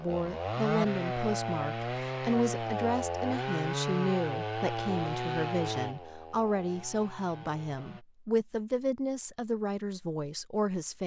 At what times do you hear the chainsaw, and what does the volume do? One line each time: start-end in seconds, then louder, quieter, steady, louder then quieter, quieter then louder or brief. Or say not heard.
0.0-8.1 quieter.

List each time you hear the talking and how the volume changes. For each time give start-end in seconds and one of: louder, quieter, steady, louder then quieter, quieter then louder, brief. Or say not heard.
0.0-11.0 steady.